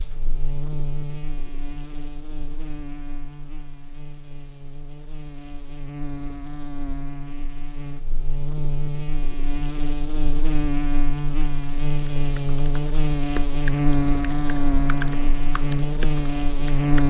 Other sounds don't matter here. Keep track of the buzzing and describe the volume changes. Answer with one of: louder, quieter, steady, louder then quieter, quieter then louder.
louder.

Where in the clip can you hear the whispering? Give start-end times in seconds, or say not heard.
not heard.